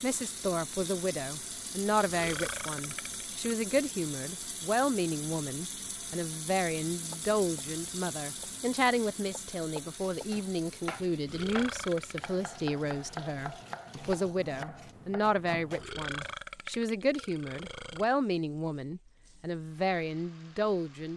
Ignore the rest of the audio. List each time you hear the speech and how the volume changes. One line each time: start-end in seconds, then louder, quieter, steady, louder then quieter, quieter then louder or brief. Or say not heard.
0.0-21.1 steady.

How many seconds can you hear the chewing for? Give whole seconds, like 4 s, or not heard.
not heard.